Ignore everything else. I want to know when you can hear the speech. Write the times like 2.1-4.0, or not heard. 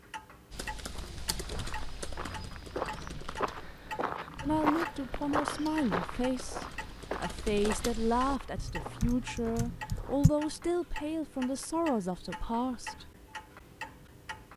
4.4-13.1.